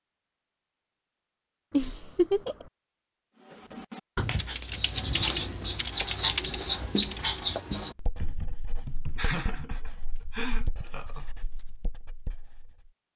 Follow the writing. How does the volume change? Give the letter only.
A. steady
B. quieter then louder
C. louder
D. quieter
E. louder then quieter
D.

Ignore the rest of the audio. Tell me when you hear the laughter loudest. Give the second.
2 s.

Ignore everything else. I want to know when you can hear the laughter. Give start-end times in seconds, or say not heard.
1.7-2.7, 8.8-11.2.